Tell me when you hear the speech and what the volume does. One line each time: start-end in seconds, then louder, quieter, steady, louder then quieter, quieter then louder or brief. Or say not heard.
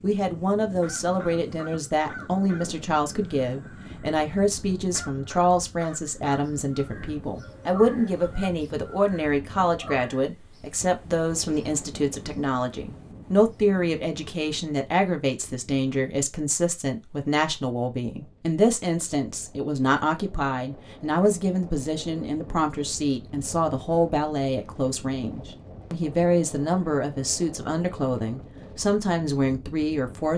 0.0-30.3 steady.